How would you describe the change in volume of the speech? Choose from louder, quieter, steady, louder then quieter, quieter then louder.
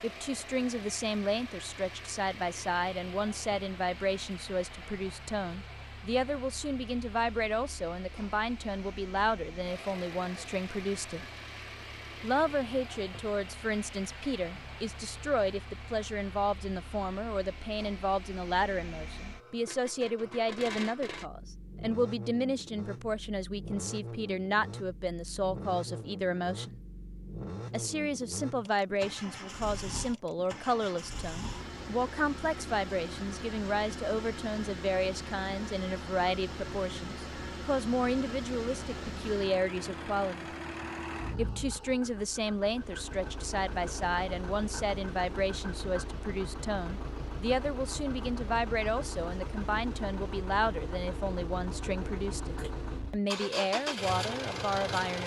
steady.